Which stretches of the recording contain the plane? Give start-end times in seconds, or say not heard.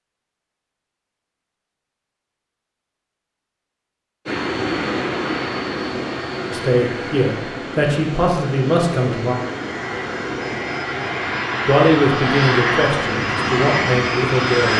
4.2-14.7.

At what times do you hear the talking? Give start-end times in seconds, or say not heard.
6.5-9.3, 11.7-14.7.